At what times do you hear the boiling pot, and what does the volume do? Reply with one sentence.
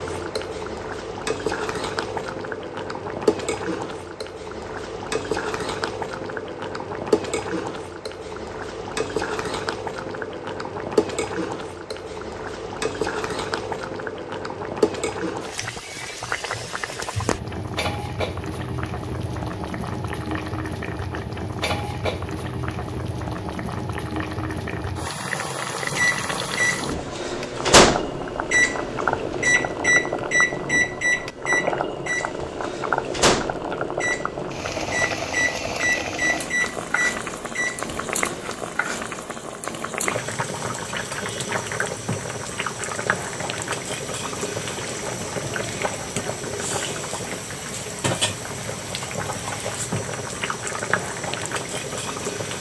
You can hear the boiling pot from 0.0 to 52.5 s, at a steady volume.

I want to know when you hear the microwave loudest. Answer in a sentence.
The loudest moment of the microwave is at 28 seconds.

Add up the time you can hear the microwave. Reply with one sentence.
You can hear the microwave for 13 seconds altogether.